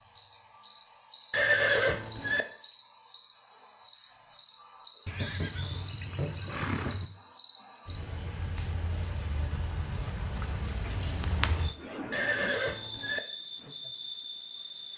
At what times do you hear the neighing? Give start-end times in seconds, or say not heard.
1.3-2.5, 5.0-7.1, 12.1-13.2.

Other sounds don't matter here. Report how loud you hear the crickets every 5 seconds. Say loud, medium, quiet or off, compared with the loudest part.
medium, medium, loud.